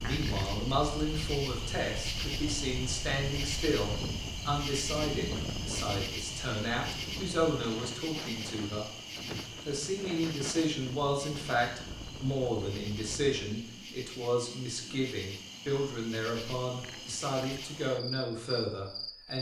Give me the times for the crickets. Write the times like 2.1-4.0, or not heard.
0.0-19.3.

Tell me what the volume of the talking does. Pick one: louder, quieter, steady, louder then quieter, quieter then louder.
steady.